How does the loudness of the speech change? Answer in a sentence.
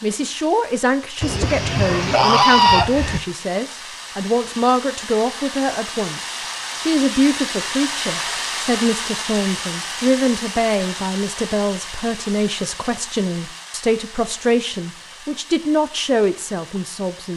The volume of the speech stays about the same.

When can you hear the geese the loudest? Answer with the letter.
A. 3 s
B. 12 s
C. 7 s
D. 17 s
A.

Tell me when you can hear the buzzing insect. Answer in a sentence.
You can't hear the buzzing insect here.